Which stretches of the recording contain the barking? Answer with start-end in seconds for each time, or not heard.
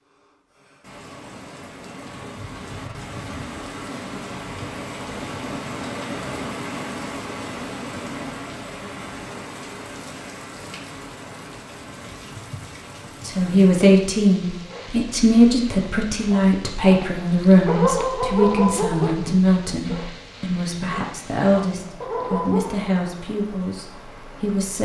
14.7-22.8.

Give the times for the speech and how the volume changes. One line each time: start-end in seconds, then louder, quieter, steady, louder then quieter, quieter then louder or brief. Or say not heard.
13.2-24.8 quieter.